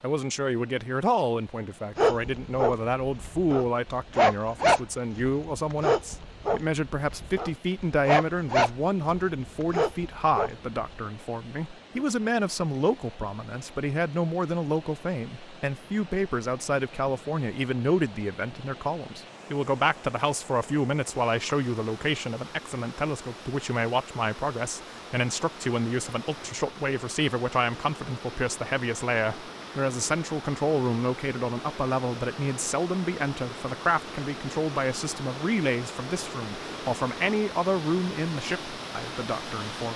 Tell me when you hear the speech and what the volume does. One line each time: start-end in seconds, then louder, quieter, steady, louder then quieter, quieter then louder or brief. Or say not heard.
0.0-39.9 steady.